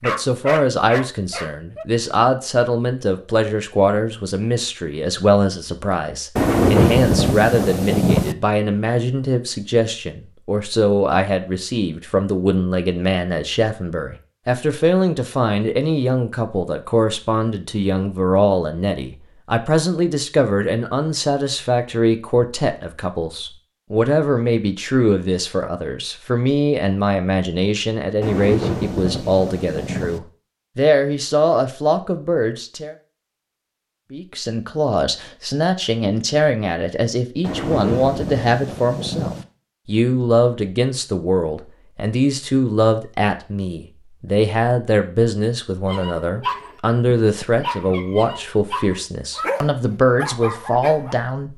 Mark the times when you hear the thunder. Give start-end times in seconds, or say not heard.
6.3-8.3, 28.2-30.2, 37.4-39.5.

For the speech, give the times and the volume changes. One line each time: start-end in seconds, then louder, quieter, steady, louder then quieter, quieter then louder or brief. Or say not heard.
0.0-33.0 steady
34.1-51.5 steady.